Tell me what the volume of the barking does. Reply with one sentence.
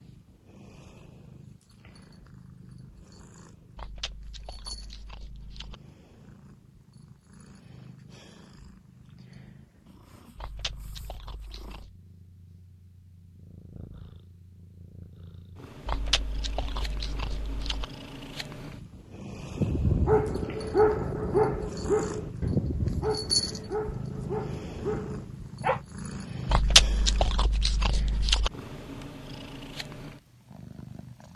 The loudness of the barking goes down.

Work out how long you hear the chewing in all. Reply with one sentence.
The chewing can be heard for 8 seconds in total.